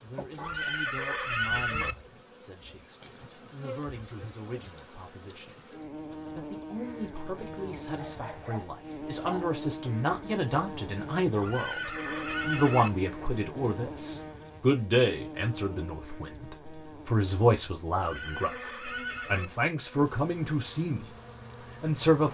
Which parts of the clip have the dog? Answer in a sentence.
The dog can be heard from 8.0 to 9.5 s.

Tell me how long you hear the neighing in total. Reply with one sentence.
The neighing can be heard for 5 seconds in total.